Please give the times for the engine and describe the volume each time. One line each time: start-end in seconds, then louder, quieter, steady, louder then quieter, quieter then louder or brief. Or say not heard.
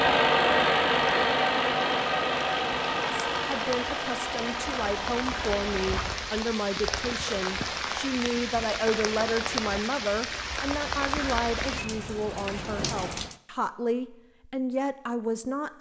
0.0-6.2 quieter.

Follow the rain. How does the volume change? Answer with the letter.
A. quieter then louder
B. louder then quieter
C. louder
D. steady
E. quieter
C.